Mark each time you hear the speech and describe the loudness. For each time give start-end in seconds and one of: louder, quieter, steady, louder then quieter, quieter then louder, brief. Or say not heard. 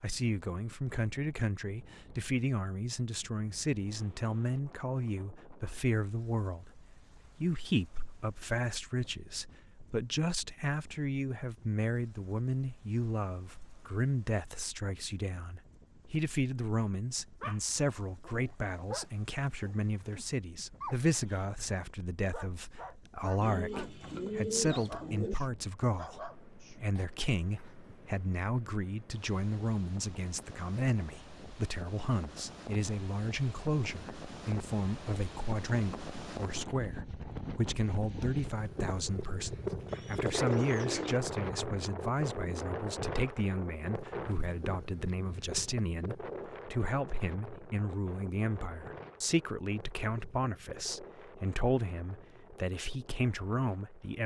0.0-54.2 steady.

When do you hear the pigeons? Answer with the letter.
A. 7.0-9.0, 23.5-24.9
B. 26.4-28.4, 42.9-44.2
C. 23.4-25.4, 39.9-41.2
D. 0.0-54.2
C.